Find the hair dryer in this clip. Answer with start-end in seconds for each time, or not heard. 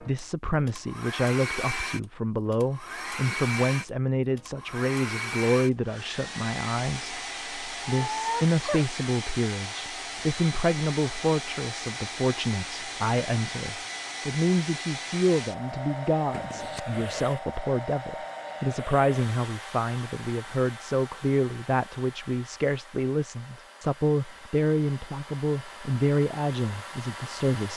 0.0-27.7.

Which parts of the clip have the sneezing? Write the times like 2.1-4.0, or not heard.
7.8-8.8, 16.3-16.8.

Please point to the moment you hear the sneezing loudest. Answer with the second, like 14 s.
8 s.